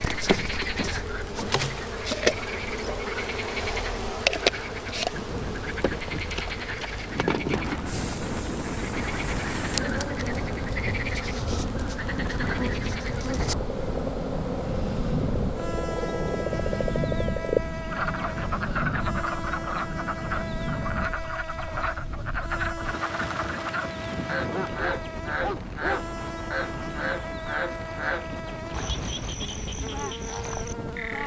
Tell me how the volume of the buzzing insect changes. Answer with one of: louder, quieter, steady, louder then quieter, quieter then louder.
quieter.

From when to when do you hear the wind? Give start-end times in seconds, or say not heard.
5.1-31.2.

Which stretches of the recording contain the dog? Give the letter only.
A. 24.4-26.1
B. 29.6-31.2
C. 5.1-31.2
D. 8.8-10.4
A.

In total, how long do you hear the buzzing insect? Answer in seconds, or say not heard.
31 s.